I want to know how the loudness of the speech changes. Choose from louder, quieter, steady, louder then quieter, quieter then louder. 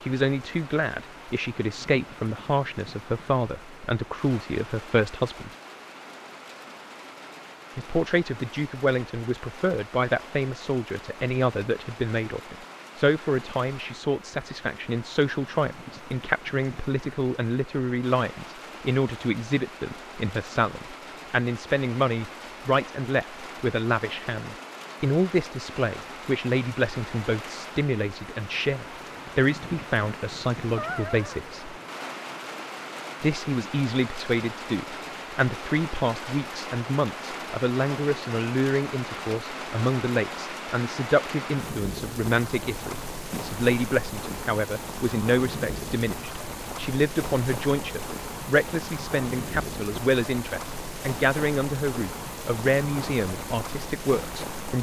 steady.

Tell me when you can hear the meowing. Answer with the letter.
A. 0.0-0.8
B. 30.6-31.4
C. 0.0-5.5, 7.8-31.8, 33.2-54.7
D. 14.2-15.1
B.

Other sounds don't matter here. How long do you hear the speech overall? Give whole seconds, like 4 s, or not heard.
51 s.